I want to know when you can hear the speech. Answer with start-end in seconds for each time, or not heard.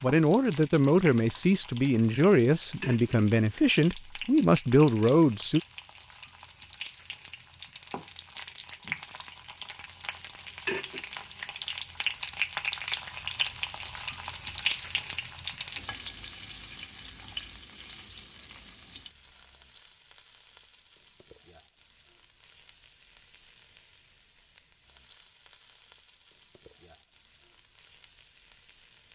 0.0-5.6.